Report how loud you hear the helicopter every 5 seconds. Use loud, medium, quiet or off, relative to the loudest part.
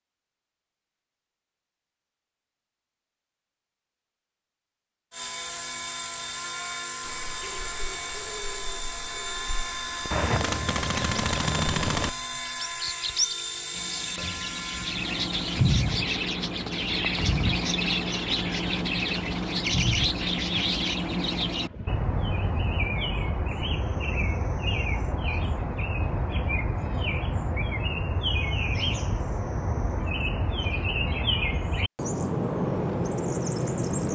off, loud, loud, medium, medium, off, off.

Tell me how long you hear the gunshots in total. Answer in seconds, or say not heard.
2 s.